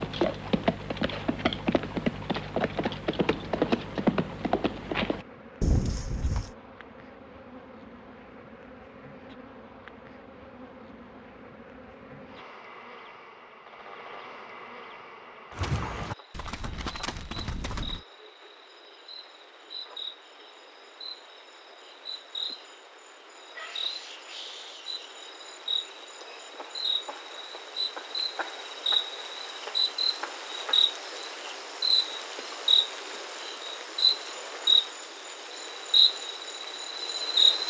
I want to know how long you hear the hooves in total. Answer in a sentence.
The hooves can be heard for 9 seconds in total.